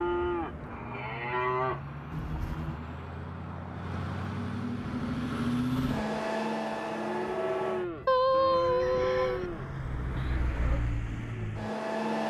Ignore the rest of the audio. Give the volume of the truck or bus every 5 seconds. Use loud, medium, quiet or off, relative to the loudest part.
medium, loud, loud.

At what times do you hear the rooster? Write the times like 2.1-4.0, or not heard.
8.1-9.5.